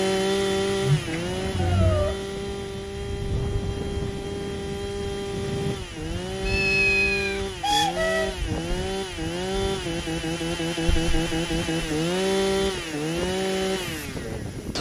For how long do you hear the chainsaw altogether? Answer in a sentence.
The chainsaw can be heard for 15 seconds in total.